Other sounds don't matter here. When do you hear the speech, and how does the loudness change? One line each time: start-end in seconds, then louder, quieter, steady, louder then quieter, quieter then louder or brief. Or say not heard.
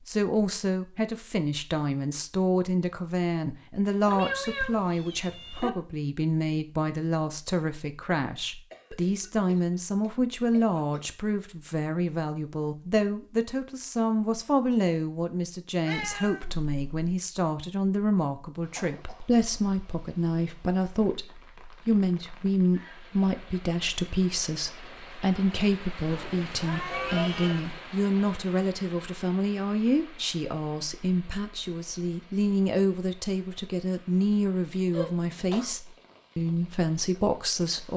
0.1-37.9 steady.